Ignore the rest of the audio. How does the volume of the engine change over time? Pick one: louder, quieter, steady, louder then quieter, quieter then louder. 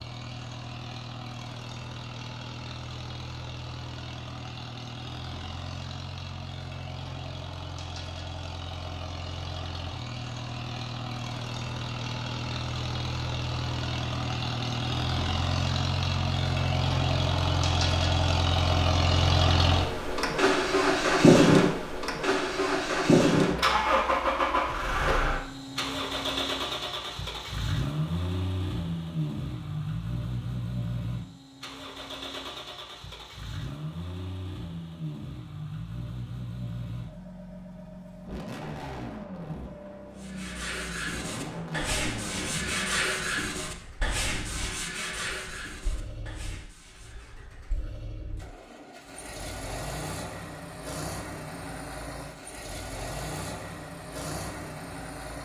louder then quieter.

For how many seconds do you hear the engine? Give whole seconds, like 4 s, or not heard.
55 s.